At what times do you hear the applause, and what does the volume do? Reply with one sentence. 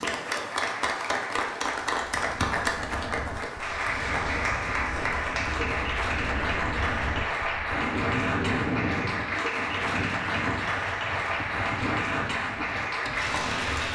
You can hear the applause from 0.0 to 13.9 s, at a steady volume.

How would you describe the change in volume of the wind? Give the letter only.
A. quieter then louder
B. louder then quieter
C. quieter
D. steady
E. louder
B.